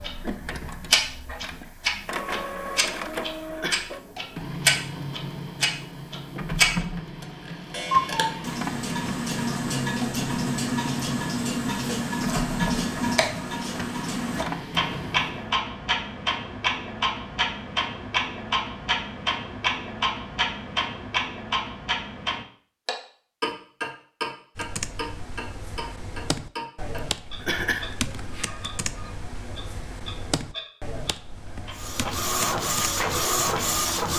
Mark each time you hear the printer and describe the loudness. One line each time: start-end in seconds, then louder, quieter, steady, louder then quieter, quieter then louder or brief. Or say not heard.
0.0-15.6 steady
31.8-34.1 brief.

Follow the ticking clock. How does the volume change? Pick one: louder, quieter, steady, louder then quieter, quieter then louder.
quieter.